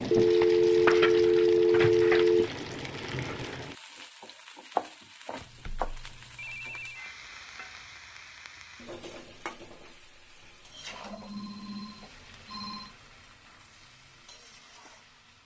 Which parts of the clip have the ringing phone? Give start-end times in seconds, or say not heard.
0.1-2.5, 5.3-7.0, 10.9-12.9.